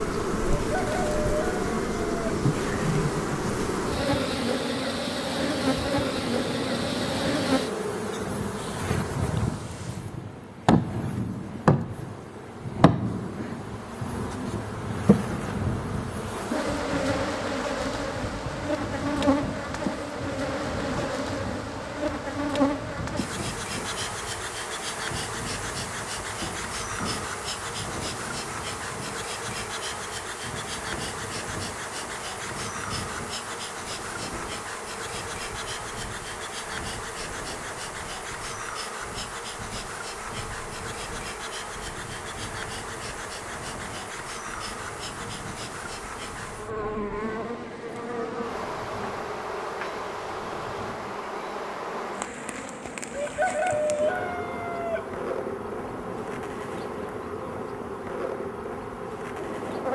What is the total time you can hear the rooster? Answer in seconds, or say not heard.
4 s.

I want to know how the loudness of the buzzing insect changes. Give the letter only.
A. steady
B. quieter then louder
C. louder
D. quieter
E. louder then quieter
D.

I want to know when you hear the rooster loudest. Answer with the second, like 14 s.
54 s.